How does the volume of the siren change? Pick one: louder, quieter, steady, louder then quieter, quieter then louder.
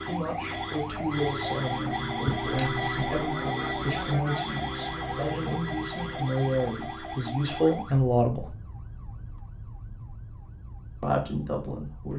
quieter.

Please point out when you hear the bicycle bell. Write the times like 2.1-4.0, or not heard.
2.2-3.2.